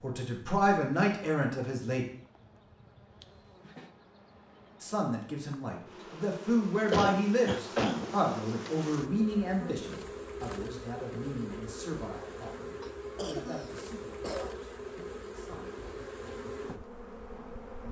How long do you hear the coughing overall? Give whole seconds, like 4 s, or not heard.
4 s.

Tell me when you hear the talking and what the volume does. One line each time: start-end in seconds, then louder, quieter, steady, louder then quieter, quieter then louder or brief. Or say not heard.
0.0-2.0 brief
4.8-17.6 quieter.